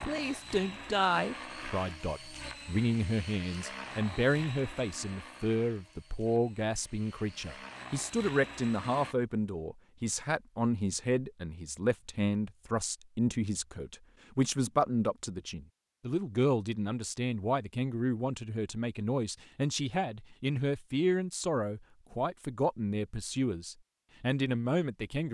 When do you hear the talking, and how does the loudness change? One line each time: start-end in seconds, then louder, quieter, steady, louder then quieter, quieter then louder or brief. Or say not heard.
0.0-25.2 steady.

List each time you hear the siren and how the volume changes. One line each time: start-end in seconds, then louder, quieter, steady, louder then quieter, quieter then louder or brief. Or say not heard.
not heard.